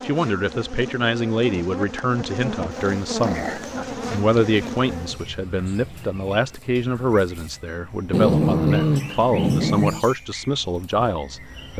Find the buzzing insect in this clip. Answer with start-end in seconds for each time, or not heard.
0.0-5.2.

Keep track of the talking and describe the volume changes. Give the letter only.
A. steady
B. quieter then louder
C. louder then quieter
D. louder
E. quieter
A.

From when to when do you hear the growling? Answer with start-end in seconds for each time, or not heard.
2.7-3.9, 8.1-10.1.